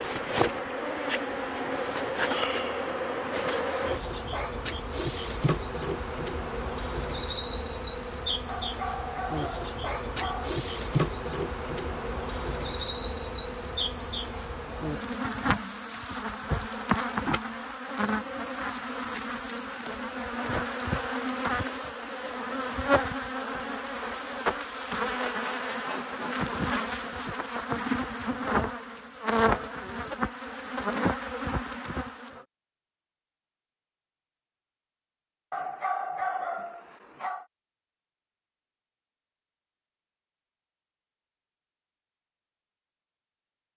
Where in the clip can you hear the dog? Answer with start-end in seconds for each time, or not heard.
8.4-10.5, 35.5-37.5.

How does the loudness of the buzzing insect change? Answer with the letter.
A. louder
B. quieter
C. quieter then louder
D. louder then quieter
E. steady
E.